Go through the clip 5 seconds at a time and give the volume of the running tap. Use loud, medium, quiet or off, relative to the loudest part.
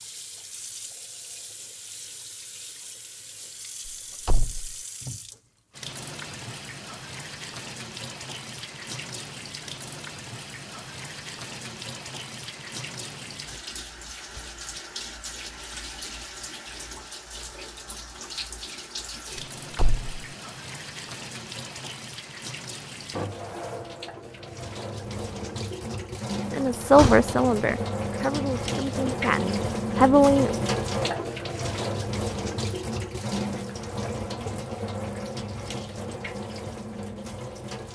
quiet, medium, medium, medium, medium, loud, loud, medium.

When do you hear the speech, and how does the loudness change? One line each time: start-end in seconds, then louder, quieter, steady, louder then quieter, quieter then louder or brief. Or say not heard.
26.5-30.6 quieter then louder.